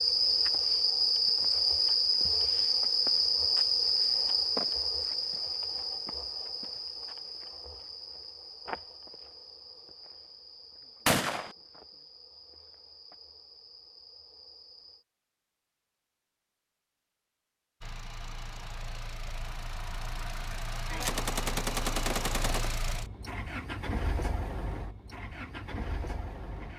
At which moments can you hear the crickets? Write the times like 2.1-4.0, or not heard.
0.0-15.1.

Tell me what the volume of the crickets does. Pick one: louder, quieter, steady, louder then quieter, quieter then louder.
quieter.